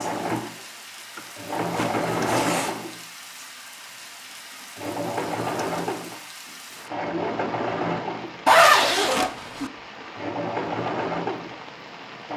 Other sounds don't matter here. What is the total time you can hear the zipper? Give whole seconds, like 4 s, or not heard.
2 s.